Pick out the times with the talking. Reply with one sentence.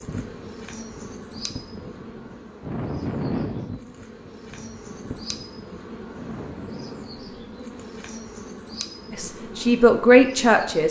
You can hear the talking from 9.1 to 10.8 s.